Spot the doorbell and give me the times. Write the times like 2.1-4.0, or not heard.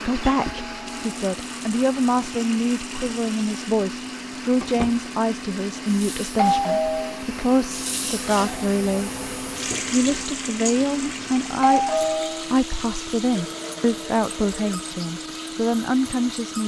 0.5-1.1, 6.3-7.2, 11.6-12.5.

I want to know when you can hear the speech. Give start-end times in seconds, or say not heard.
0.0-9.1, 9.9-16.6.